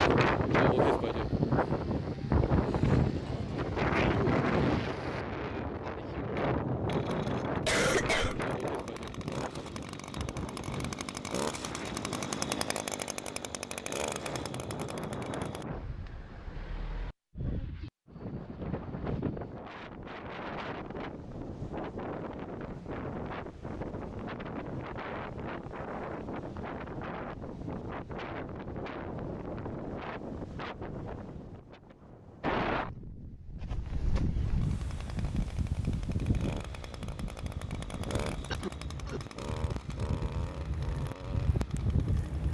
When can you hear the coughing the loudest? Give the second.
8 s.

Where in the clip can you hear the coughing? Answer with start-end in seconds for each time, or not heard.
7.6-8.4, 38.5-39.2.